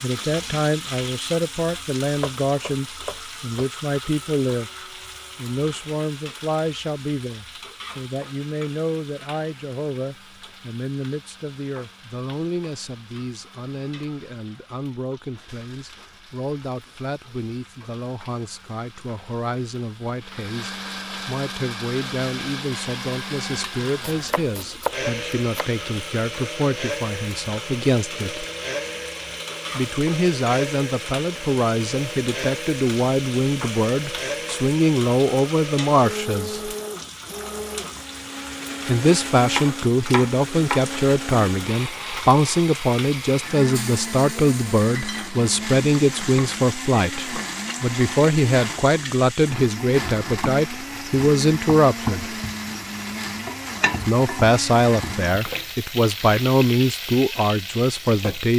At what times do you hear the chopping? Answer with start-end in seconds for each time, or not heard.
2.2-3.7, 24.0-25.6, 39.5-40.9.